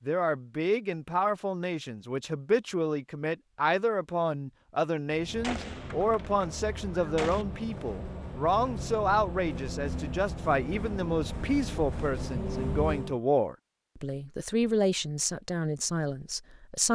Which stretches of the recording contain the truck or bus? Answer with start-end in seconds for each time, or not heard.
5.0-13.2.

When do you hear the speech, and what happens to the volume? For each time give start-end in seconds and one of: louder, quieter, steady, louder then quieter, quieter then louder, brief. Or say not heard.
0.1-16.9 steady.